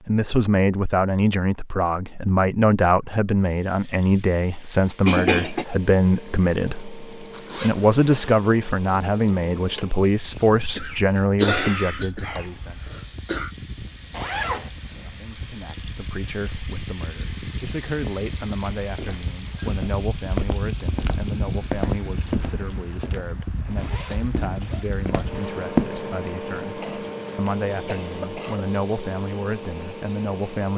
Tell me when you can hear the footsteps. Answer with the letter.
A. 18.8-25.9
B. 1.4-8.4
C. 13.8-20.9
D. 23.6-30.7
A.